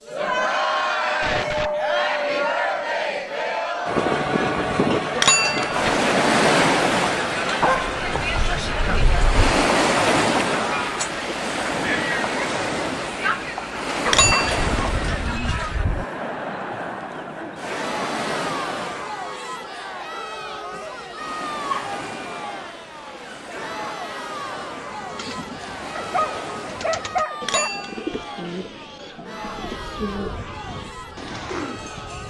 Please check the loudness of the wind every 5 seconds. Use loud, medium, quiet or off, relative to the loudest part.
loud, loud, loud, medium, quiet, quiet, quiet.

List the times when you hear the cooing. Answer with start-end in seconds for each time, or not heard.
24.9-32.2.